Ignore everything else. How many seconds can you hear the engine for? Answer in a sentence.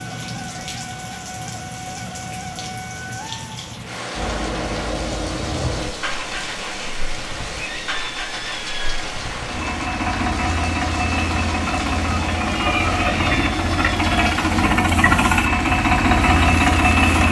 You can hear the engine for 13 seconds altogether.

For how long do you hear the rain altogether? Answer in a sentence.
You can hear the rain for 17 seconds altogether.